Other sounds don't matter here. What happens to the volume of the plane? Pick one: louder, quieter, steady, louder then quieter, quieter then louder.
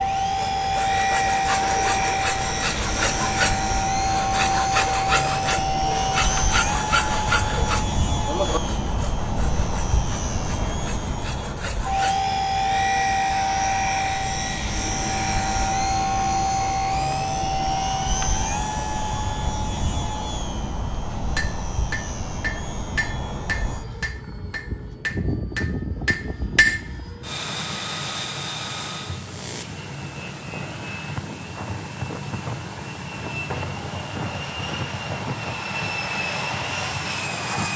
quieter.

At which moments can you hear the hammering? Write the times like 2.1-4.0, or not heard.
21.1-26.8.